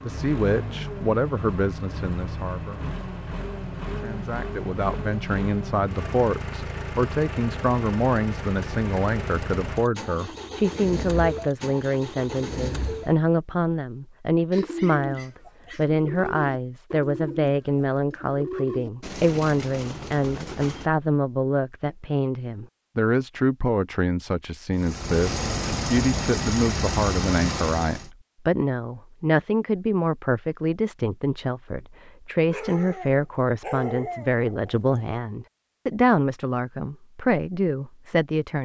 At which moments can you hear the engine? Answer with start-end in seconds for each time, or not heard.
0.0-13.2, 24.8-28.1.